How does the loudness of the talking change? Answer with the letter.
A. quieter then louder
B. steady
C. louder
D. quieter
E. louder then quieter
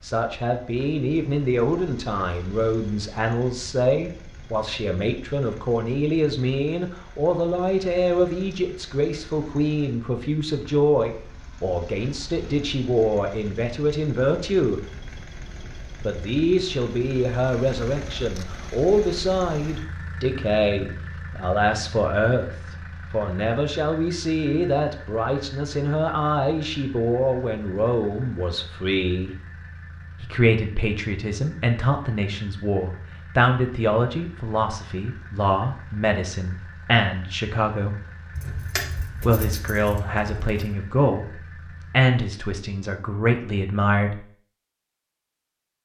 B.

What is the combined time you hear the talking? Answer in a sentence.
The talking can be heard for 41 seconds in total.